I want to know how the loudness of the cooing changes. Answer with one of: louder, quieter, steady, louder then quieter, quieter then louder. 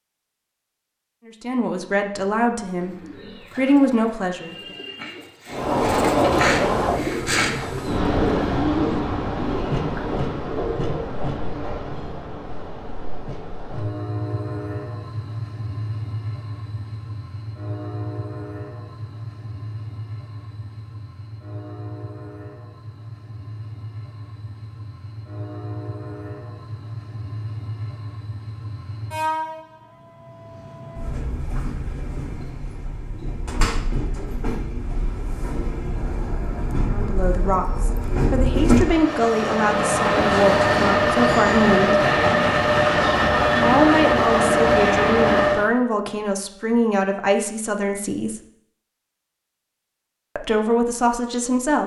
louder then quieter.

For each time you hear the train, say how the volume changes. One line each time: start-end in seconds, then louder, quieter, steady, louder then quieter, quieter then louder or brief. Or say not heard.
5.5-45.7 quieter then louder.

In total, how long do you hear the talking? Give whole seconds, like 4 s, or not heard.
14 s.